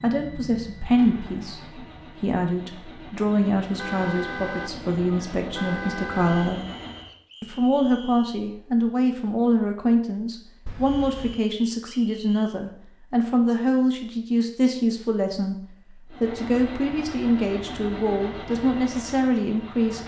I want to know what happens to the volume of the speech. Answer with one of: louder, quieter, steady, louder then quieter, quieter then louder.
steady.